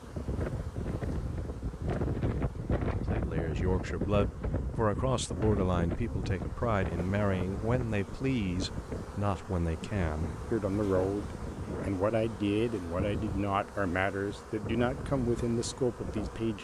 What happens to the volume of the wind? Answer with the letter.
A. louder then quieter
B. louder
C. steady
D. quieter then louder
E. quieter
E.